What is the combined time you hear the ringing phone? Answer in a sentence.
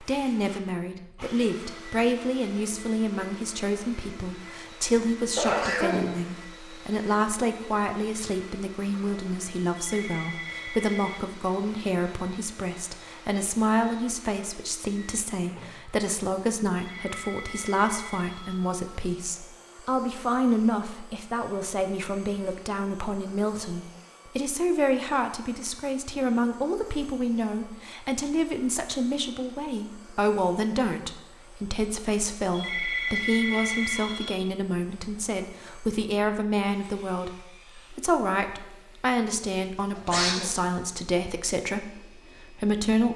The ringing phone can be heard for 5 seconds in total.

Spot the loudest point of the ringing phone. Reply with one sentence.
The loudest moment of the ringing phone is at 33 seconds.